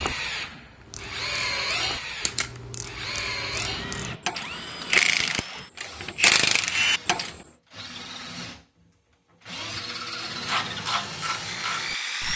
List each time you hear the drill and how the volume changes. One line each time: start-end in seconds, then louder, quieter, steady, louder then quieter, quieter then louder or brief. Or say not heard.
0.0-12.3 quieter then louder.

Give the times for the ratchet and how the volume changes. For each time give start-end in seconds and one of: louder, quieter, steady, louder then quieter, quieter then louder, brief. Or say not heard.
0.8-7.3 louder
10.2-12.3 brief.